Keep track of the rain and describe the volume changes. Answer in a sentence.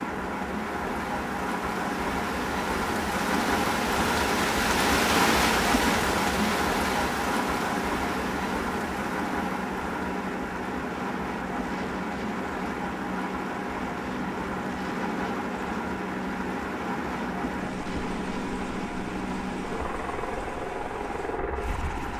The loudness of the rain goes down.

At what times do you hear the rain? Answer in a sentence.
You can hear the rain from 0.0 to 22.1 s.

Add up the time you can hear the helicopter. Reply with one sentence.
The helicopter can be heard for 22 seconds in total.